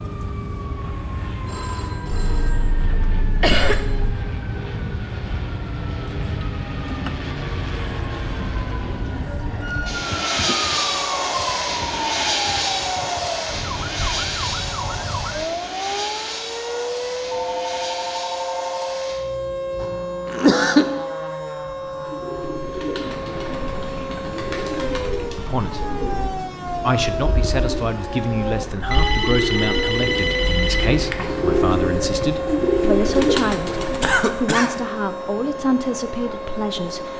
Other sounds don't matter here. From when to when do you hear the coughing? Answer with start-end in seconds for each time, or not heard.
2.1-4.1, 19.8-20.9, 34.0-34.8.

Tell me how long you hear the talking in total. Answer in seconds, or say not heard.
11 s.